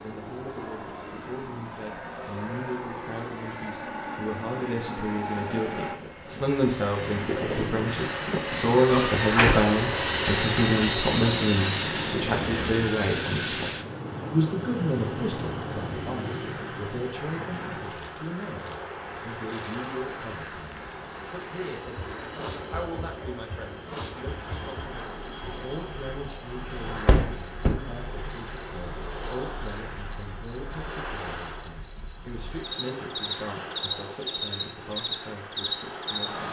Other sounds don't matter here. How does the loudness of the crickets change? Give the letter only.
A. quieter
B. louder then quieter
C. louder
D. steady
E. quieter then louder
C.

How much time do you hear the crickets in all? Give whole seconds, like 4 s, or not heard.
20 s.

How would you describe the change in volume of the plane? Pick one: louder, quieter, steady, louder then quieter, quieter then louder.
louder then quieter.